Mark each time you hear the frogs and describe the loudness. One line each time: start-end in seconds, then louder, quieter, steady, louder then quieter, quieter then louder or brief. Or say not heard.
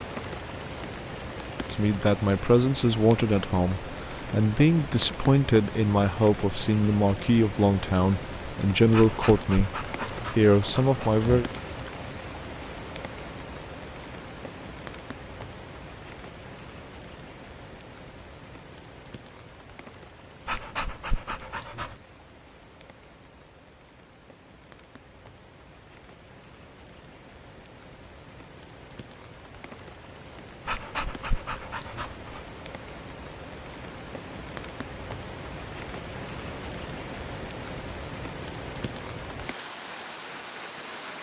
not heard.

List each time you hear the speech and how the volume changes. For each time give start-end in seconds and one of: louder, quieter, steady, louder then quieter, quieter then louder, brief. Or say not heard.
1.7-9.7 steady
10.3-11.4 brief.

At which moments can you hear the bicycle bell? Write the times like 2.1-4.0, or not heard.
not heard.